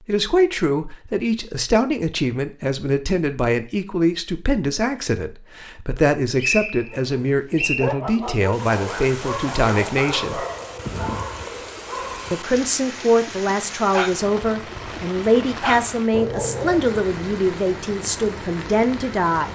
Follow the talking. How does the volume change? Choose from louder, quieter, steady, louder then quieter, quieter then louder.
steady.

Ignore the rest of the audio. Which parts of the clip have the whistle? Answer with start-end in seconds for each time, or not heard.
6.4-7.8.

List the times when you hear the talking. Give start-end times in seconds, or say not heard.
0.1-10.4, 12.3-19.4.